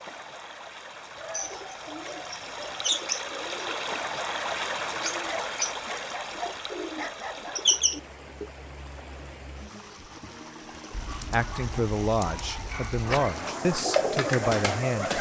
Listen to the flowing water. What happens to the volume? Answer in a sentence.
The volume of the flowing water goes up, then down.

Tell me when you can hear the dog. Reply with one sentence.
You can hear the dog from 1.1 to 3.0 s, from 5.2 to 7.8 s and from 10.9 to 13.1 s.